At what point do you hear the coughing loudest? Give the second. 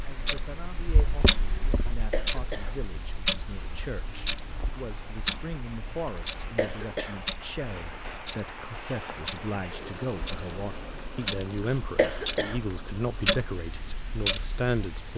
12 s.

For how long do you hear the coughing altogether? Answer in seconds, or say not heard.
3 s.